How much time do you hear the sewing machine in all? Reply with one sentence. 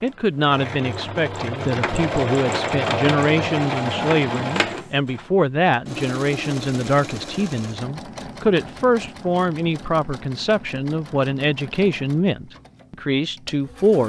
The sewing machine can be heard for 14 seconds in total.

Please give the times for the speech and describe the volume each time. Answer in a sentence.
The speech can be heard from 0.0 to 14.0 s, at a steady volume.